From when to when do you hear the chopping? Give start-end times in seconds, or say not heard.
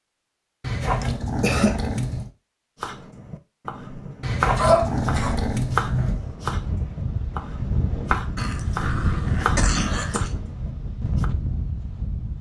2.8-11.2.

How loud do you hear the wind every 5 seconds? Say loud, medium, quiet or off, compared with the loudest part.
off, loud, loud.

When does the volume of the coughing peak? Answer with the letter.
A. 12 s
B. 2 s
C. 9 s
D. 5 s
D.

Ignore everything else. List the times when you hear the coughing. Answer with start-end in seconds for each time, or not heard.
1.0-1.9, 4.5-5.4, 8.3-10.3.